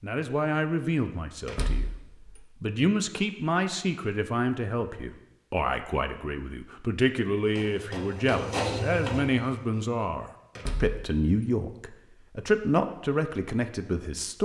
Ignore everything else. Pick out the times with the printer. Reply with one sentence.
The printer can be heard from 7.3 to 9.8 s.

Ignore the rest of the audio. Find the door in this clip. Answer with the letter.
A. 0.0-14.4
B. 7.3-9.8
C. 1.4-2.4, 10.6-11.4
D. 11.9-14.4
C.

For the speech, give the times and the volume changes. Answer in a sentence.
The speech can be heard from 0.0 to 14.4 s, at a steady volume.